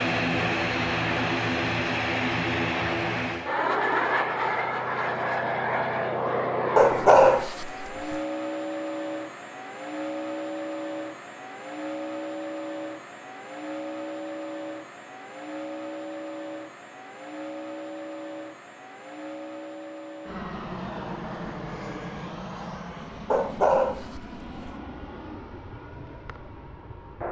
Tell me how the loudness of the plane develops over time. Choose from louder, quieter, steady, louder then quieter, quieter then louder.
quieter.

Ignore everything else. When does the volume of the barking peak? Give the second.
7 s.